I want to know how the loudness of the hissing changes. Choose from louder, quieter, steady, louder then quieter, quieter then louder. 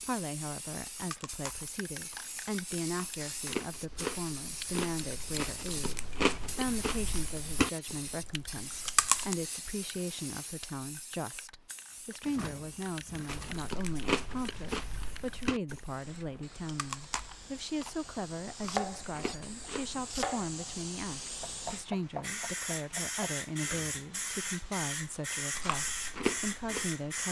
quieter then louder.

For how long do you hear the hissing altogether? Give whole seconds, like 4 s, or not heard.
27 s.